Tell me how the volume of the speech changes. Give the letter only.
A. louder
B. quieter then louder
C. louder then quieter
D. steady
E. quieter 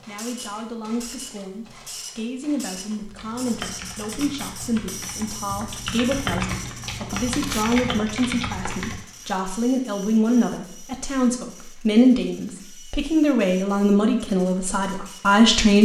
A.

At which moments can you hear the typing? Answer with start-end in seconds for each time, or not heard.
3.0-9.1.